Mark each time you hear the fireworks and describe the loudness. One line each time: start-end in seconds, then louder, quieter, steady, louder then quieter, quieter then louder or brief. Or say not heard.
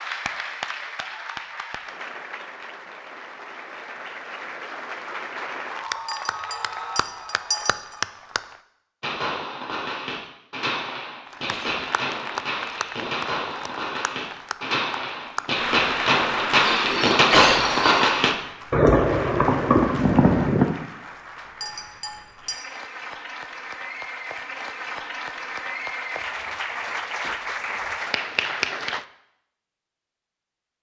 9.0-20.6 louder.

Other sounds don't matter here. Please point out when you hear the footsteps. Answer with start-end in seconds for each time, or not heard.
not heard.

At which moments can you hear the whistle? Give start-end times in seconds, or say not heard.
not heard.